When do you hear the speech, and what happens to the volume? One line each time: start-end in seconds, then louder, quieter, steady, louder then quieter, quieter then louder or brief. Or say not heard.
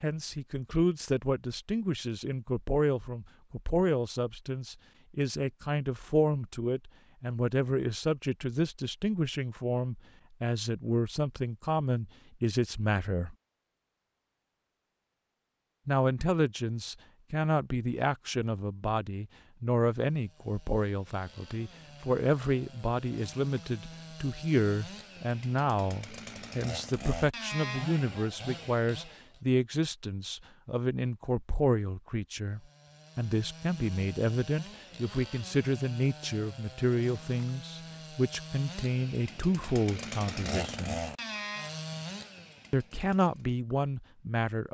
0.0-13.3 steady
15.8-41.0 steady
42.7-44.7 brief.